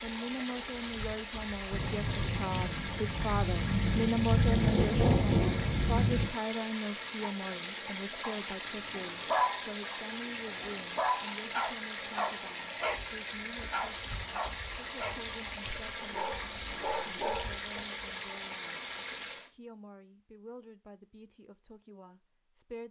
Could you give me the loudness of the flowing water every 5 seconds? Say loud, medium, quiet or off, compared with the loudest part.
loud, loud, loud, loud, off.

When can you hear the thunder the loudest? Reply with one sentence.
The volume of the thunder peaks at 5 seconds.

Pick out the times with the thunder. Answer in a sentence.
You can hear the thunder from 1.7 to 6.3 s.